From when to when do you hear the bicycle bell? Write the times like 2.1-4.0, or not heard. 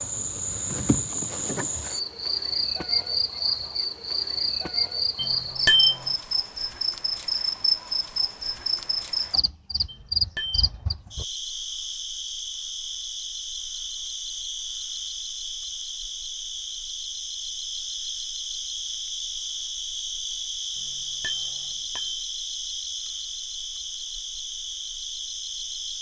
5.2-6.0, 9.8-10.7, 20.8-22.2.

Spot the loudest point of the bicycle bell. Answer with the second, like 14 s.
6 s.